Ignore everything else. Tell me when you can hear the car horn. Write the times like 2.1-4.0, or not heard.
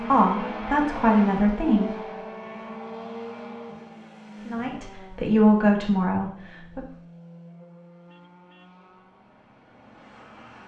8.1-8.8.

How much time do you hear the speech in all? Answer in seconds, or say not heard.
4 s.